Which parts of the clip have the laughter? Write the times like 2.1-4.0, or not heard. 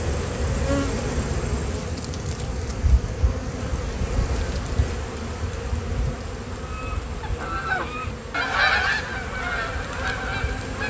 not heard.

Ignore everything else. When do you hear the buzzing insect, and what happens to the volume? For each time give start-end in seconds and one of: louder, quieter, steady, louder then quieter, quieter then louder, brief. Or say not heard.
0.0-10.8 quieter.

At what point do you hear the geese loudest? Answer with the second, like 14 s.
9 s.